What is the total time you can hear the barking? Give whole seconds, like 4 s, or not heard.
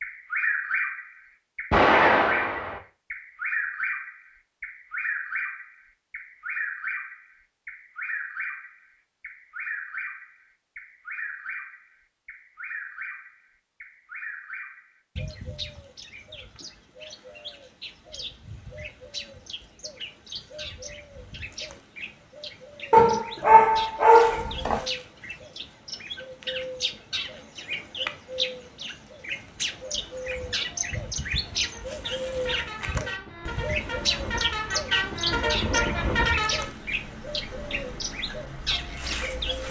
2 s.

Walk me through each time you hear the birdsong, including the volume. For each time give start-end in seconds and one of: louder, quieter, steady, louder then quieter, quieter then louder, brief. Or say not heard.
0.0-39.6 quieter then louder.